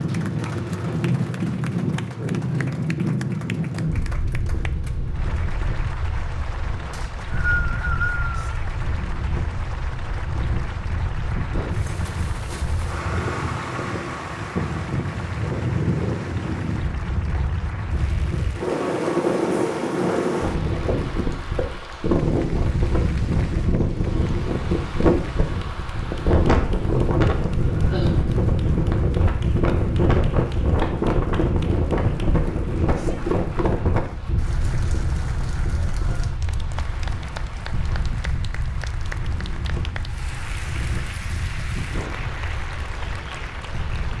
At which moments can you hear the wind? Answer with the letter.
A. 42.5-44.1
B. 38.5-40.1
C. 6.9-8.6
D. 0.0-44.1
D.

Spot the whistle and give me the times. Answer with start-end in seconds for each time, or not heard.
6.9-8.6.